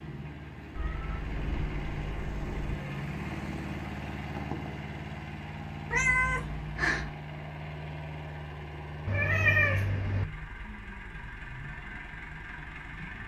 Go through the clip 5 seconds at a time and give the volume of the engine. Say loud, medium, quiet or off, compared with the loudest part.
loud, loud, medium.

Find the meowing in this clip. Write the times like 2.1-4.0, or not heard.
0.8-2.8, 5.9-7.1, 9.1-10.2.